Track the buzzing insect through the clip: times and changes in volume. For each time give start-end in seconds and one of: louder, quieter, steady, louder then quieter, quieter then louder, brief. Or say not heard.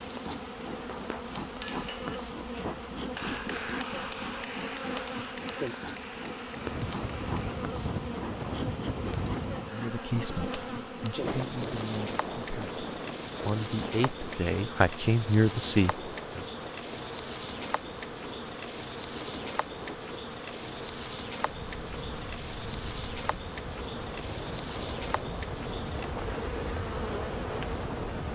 0.0-28.3 steady.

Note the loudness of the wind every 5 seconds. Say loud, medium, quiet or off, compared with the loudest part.
off, loud, loud, medium, medium, loud.